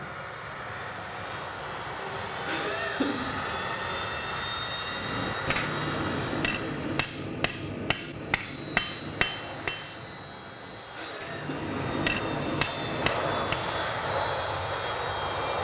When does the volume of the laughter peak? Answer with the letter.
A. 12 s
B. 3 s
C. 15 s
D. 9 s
B.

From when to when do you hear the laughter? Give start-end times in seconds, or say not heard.
2.5-3.2, 10.9-11.6.